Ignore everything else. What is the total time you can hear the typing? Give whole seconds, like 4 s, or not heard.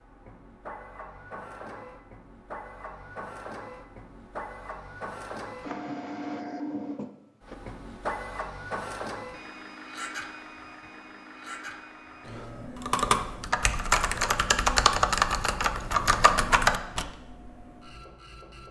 4 s.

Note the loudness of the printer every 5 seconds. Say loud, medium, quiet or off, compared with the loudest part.
medium, loud, medium, medium.